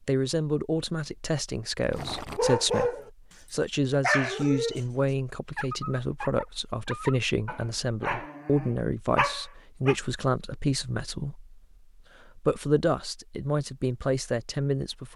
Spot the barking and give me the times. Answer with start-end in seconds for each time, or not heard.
1.9-3.1, 3.9-9.9.